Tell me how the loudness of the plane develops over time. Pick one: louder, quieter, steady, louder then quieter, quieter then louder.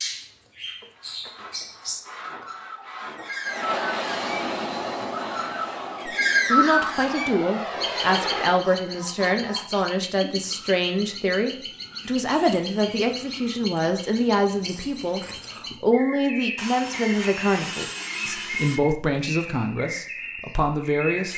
quieter then louder.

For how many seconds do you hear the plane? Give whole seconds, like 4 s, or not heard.
5 s.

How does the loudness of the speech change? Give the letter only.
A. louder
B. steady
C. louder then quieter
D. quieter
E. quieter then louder
B.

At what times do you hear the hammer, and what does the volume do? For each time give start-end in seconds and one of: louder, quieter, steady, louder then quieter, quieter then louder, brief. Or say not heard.
not heard.